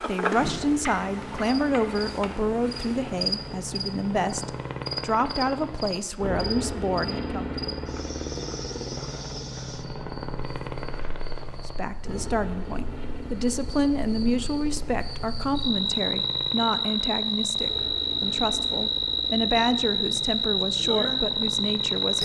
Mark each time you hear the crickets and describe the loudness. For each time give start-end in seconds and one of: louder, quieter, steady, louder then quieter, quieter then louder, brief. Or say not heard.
0.0-22.2 quieter then louder.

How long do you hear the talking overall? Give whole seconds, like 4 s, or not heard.
18 s.